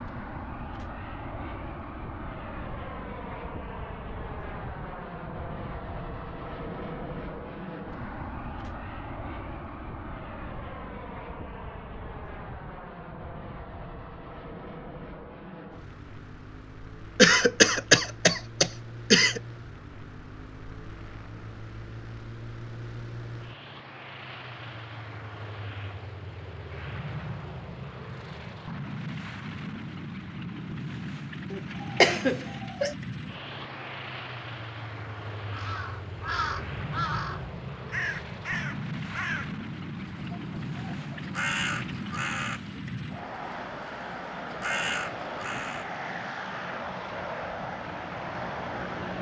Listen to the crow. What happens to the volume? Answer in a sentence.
The volume of the crow stays about the same.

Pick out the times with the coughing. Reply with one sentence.
You can hear the coughing from 17.1 to 19.4 s and from 31.5 to 33.0 s.